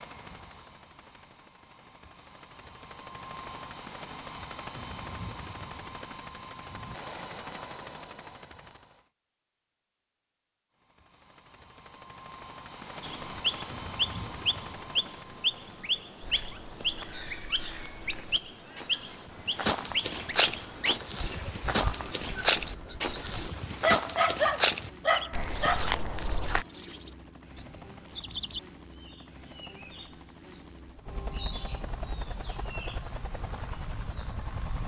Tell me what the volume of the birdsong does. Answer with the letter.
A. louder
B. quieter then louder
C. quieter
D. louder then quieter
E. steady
C.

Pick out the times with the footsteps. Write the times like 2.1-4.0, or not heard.
16.2-26.6.